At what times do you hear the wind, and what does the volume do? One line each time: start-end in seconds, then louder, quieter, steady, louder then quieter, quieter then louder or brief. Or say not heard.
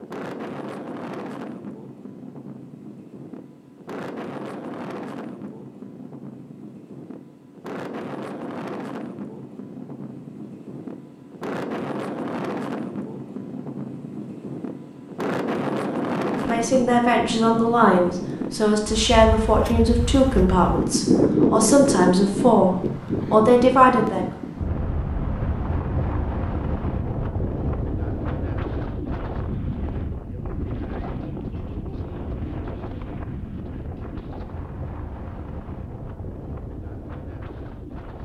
0.0-38.1 louder then quieter.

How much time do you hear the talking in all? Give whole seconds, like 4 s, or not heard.
8 s.